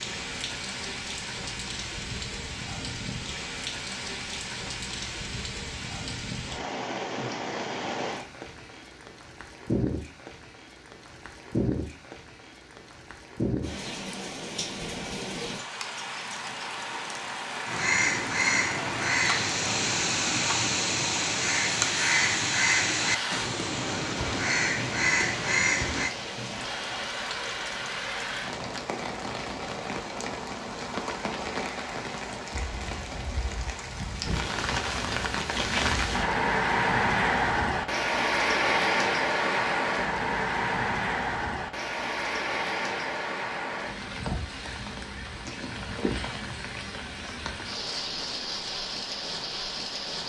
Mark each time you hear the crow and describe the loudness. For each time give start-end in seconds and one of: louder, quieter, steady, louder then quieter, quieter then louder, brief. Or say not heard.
17.6-26.1 steady.